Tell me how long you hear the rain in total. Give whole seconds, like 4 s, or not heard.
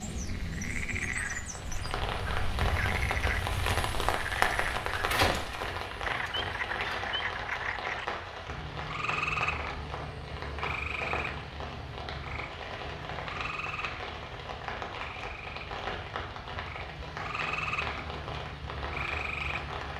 20 s.